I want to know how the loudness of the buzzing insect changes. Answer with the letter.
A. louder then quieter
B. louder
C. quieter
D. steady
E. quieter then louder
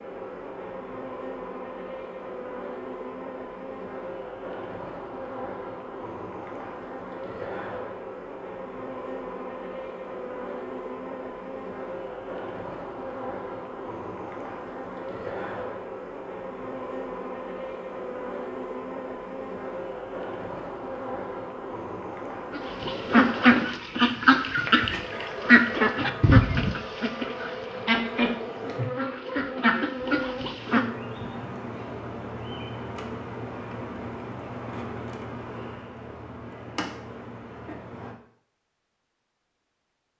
D.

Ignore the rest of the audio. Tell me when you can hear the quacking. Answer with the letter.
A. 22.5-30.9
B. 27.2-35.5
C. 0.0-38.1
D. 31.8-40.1
A.